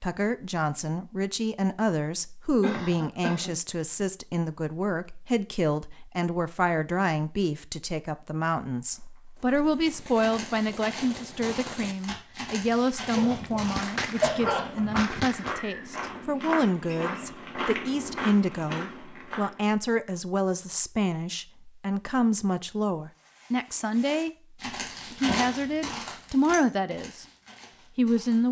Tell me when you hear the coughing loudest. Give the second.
14 s.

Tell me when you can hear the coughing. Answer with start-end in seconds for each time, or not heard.
2.6-3.5, 13.1-15.0, 25.2-25.9.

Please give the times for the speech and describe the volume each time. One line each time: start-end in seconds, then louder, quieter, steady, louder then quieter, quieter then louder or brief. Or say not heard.
0.0-24.3 steady
25.1-27.2 brief
27.9-28.4 brief.